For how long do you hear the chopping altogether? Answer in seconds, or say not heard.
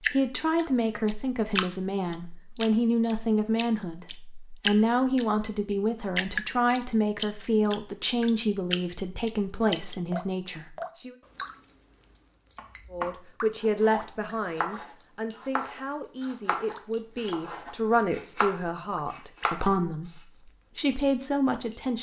7 s.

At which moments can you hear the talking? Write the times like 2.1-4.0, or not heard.
0.1-11.2, 12.9-21.9.